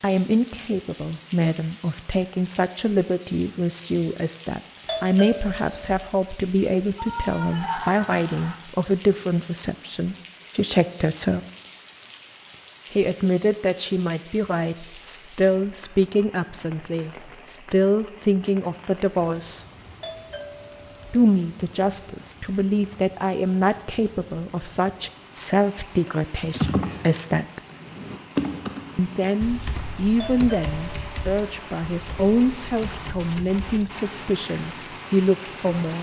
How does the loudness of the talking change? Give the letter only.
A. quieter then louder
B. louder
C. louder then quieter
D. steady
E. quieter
D.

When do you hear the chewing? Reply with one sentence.
The chewing can't be heard in this clip.